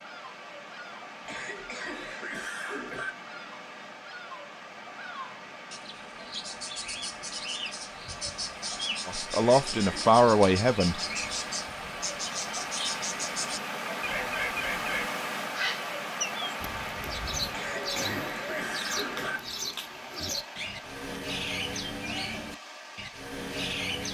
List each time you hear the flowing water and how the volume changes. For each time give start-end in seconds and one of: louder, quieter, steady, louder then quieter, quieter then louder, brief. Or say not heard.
0.0-24.1 louder then quieter.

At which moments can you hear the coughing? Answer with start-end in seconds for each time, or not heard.
1.2-3.1, 9.3-10.2, 17.5-19.4.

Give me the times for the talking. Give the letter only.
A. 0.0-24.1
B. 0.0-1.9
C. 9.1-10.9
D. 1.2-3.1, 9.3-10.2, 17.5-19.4
C.